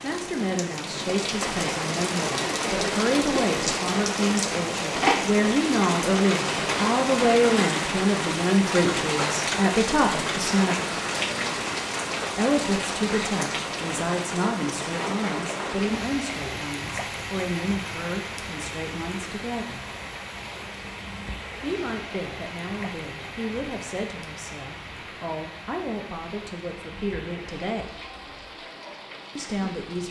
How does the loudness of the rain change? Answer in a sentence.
The loudness of the rain goes down.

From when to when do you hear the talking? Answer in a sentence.
You can hear the talking from 0.0 to 10.9 s, from 12.3 to 19.9 s, from 21.6 to 27.9 s and from 29.4 to 30.0 s.